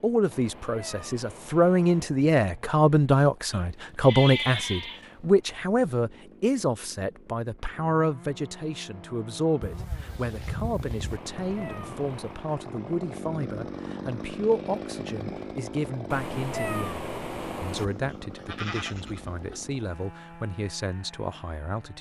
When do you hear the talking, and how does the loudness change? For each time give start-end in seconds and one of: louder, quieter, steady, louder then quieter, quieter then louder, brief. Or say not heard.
0.0-21.9 quieter.